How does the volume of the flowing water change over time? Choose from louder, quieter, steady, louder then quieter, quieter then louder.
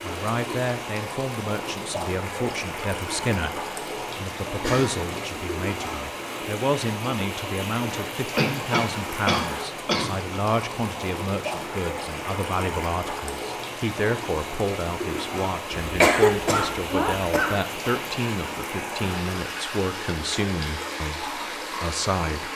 steady.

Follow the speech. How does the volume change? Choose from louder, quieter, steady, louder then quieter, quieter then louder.
steady.